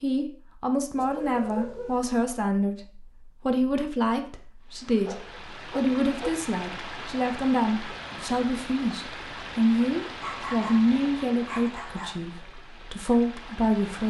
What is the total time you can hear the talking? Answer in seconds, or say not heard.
14 s.